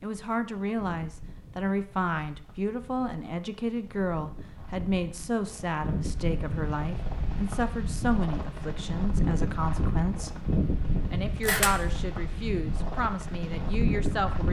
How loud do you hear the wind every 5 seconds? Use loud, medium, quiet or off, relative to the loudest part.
quiet, loud, loud.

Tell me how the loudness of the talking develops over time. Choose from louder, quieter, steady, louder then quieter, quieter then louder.
steady.